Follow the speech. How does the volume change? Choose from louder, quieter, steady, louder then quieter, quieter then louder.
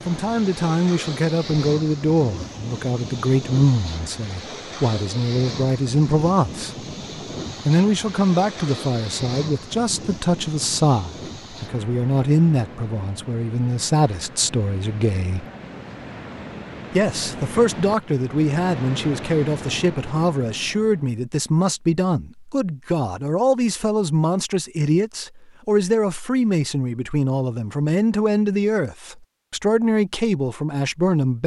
steady.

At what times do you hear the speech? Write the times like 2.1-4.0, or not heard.
0.1-6.8, 7.7-15.4, 16.9-31.4.